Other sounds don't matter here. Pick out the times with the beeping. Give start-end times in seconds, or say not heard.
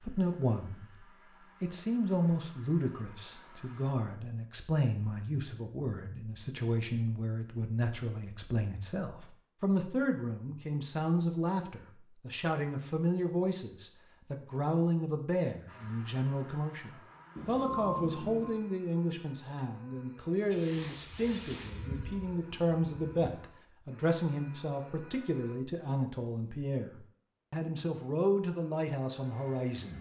17.4-18.6.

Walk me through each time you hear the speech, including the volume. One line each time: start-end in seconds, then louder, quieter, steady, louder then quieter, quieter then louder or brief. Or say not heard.
0.0-29.9 steady.